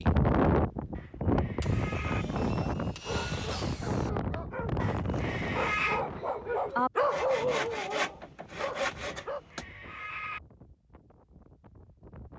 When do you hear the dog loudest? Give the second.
7 s.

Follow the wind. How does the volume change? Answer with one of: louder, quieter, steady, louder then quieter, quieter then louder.
quieter.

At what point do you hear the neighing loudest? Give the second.
6 s.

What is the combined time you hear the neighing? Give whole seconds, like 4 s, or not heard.
4 s.